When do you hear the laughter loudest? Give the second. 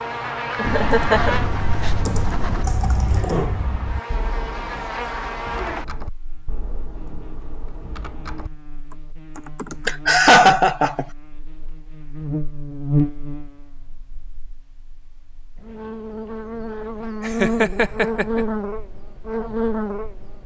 10 s.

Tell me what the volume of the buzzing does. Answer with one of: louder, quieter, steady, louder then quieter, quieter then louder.
quieter then louder.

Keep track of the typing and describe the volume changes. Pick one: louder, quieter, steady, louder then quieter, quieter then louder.
quieter.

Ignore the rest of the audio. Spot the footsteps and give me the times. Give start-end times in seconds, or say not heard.
not heard.